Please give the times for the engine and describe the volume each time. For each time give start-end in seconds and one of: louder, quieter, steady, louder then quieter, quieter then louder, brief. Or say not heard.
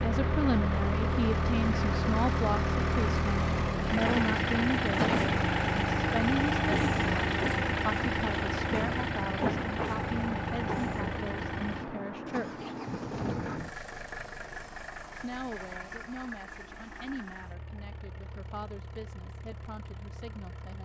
0.0-20.7 quieter.